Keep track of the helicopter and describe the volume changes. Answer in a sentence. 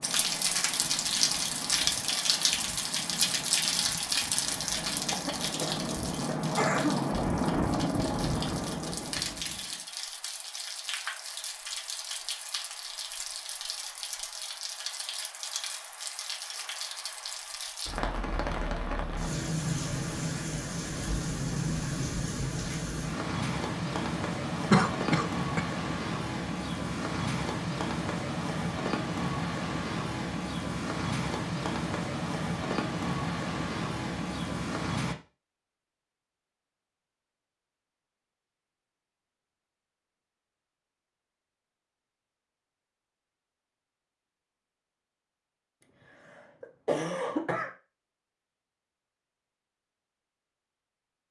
The volume of the helicopter goes up.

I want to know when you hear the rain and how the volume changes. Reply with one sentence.
The rain can be heard from 0.0 to 35.1 s, getting quieter then louder.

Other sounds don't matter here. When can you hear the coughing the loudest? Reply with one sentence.
The loudest moment of the coughing is at 25 seconds.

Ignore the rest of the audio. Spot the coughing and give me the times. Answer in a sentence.
The coughing can be heard from 5.1 to 7.0 s, from 24.7 to 25.6 s and from 45.8 to 47.8 s.